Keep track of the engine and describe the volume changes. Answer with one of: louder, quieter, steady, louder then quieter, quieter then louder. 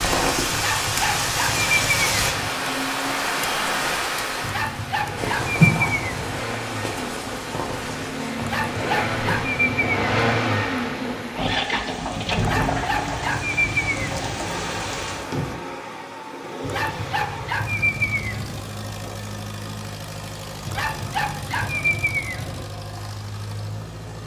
louder then quieter.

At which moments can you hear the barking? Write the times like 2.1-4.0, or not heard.
0.5-2.5, 4.4-6.4, 8.4-10.2, 12.3-14.4, 16.6-18.6, 20.6-22.6.